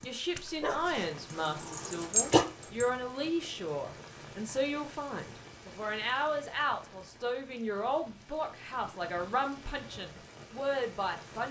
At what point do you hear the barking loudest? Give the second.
2 s.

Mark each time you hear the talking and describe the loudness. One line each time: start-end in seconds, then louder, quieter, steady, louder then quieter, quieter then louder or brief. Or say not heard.
0.0-11.4 steady.